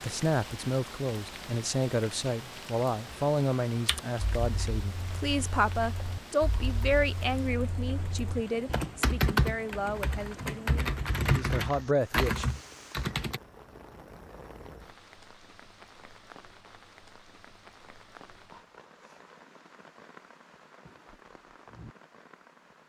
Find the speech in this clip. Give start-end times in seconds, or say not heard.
0.0-12.4.